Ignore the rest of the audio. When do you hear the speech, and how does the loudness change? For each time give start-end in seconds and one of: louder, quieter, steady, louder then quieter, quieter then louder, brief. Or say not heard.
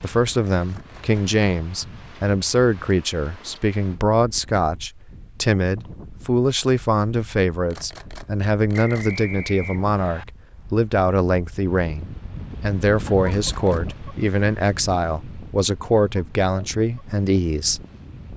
0.0-17.8 steady.